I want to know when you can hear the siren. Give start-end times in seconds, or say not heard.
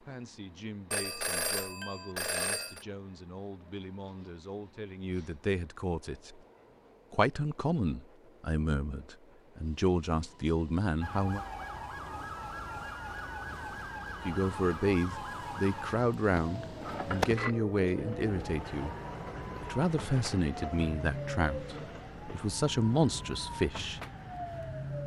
11.0-25.0.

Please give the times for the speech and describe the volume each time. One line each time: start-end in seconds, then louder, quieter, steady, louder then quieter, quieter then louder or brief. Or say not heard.
0.0-6.4 louder
7.1-11.4 quieter then louder
14.2-18.9 steady
19.6-24.0 quieter then louder.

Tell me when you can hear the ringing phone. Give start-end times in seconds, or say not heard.
0.9-2.9, 16.8-17.6.